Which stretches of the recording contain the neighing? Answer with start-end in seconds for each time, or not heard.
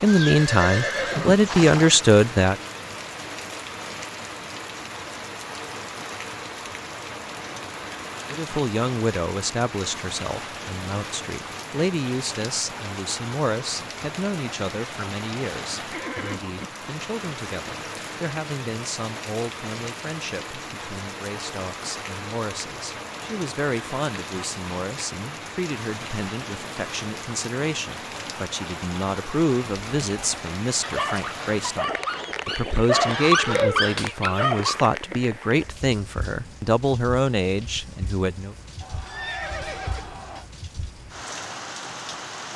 0.1-1.9, 15.9-16.6, 38.8-40.5.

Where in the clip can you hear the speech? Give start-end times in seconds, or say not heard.
0.0-2.5, 8.3-38.5.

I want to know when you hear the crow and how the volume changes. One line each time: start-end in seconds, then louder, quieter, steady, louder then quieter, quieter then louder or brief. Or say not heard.
not heard.